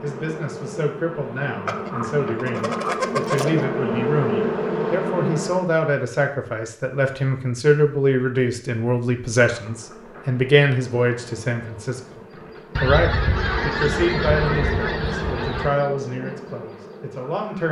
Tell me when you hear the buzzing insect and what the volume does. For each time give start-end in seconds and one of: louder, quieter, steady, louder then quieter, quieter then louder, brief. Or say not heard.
0.0-5.8 louder
9.5-17.6 louder then quieter.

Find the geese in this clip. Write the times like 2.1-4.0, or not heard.
1.6-3.6, 12.8-15.7.